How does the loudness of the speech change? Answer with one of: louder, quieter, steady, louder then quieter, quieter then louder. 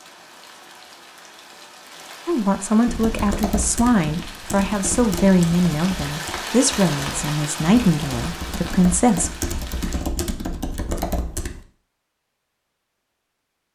steady.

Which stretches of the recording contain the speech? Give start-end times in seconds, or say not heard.
2.2-9.3.